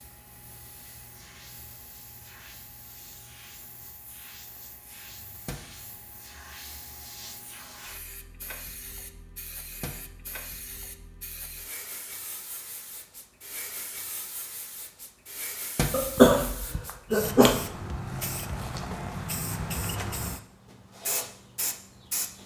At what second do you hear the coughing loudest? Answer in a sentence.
The loudest moment of the coughing is at 16 seconds.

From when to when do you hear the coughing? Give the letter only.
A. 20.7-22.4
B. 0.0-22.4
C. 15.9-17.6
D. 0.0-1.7
C.